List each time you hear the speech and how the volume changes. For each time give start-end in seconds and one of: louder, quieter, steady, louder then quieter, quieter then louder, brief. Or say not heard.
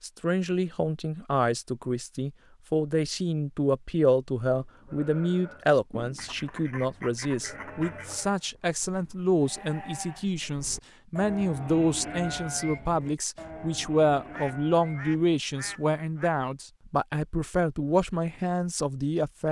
0.0-19.4 steady.